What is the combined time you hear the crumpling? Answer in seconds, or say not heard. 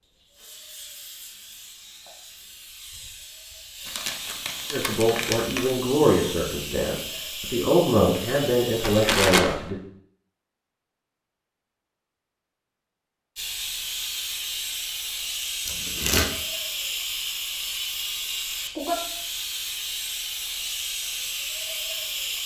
3 s.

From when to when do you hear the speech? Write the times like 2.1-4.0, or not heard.
4.7-9.8.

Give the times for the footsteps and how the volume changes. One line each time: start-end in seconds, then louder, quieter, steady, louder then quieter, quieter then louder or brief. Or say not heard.
not heard.